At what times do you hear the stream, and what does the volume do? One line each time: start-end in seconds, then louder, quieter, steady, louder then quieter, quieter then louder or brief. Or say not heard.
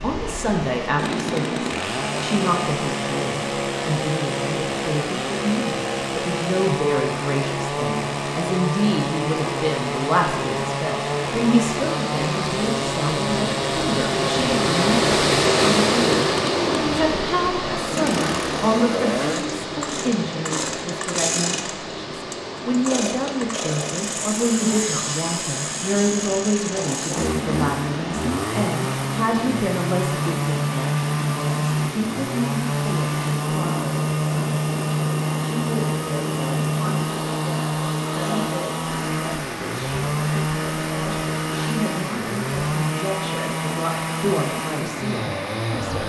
0.0-46.0 louder then quieter.